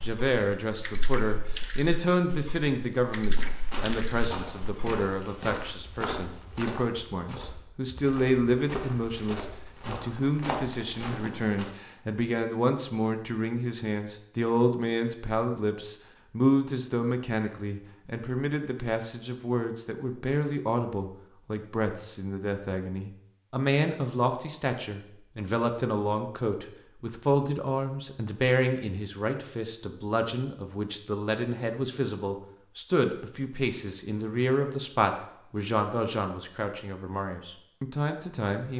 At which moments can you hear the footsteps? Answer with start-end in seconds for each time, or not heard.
3.3-11.7.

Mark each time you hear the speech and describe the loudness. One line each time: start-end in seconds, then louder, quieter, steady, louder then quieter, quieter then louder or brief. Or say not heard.
0.0-38.7 steady.